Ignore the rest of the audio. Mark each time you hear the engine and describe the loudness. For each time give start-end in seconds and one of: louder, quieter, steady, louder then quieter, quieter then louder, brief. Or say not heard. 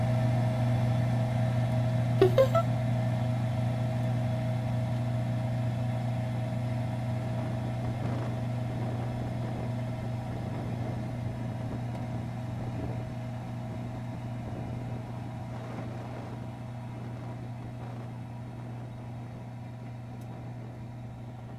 0.0-21.5 quieter.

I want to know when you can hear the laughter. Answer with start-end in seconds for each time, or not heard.
2.2-2.6.